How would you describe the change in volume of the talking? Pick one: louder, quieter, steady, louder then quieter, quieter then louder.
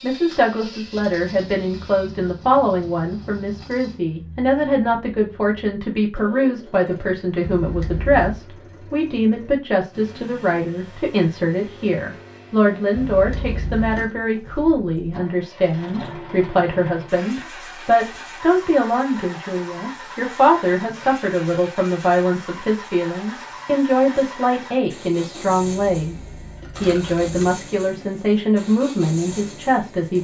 steady.